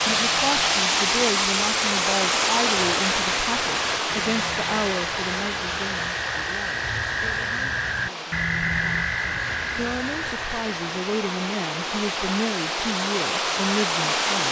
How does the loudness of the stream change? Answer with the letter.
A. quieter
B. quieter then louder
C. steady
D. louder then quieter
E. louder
B.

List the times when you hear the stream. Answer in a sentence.
The stream can be heard from 0.0 to 14.4 s.